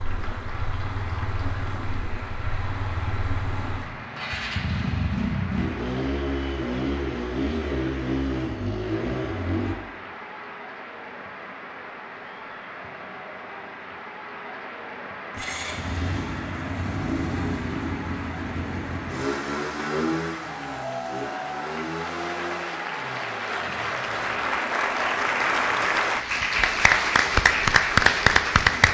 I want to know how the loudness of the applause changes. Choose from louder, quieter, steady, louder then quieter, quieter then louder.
louder.